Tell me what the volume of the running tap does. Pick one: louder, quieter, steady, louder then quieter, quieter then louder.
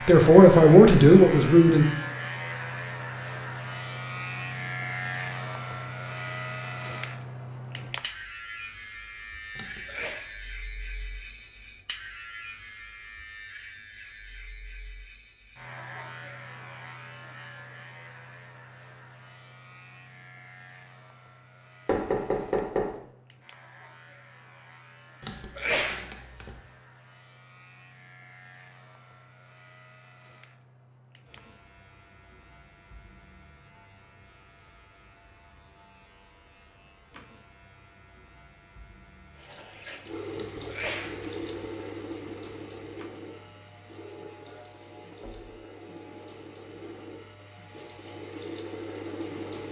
quieter then louder.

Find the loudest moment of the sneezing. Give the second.
26 s.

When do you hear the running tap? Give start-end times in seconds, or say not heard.
39.4-49.6.